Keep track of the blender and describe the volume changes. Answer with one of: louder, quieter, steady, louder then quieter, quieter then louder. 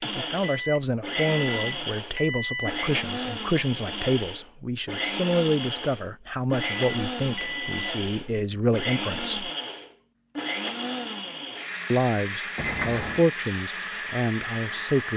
steady.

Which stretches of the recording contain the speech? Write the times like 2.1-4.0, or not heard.
0.1-9.5, 11.9-15.1.